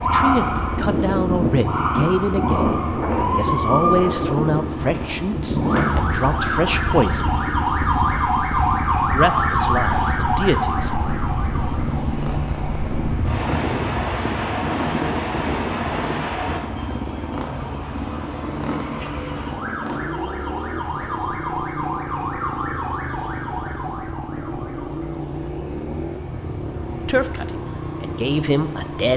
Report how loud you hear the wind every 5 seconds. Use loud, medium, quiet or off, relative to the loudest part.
loud, loud, loud, loud, off, off.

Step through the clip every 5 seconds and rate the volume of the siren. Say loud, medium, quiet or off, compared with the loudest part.
loud, loud, medium, medium, medium, quiet.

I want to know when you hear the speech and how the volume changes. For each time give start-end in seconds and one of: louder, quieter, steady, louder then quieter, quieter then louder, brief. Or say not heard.
0.0-7.3 steady
9.1-10.9 brief
27.1-29.1 brief.